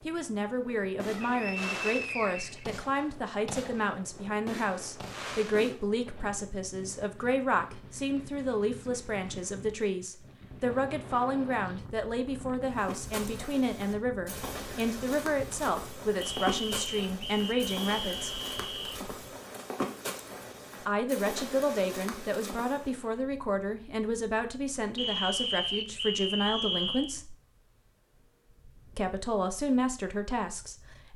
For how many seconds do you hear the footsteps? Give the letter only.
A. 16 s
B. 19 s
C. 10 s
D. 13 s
C.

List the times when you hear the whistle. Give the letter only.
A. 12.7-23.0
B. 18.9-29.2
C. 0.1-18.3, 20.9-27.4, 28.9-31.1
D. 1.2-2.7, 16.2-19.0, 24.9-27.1
D.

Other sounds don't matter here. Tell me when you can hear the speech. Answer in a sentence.
The speech can be heard from 0.1 to 18.3 s, from 20.9 to 27.4 s and from 28.9 to 31.1 s.